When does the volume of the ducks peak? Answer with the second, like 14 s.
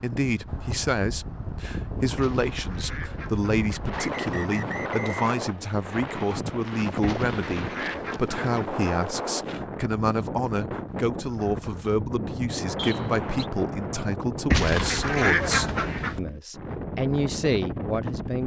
15 s.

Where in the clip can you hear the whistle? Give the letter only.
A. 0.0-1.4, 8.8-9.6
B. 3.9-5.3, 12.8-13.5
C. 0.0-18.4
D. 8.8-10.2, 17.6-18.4
B.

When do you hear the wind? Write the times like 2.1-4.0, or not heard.
0.0-18.4.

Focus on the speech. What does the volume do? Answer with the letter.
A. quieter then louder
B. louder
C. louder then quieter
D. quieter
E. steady
E.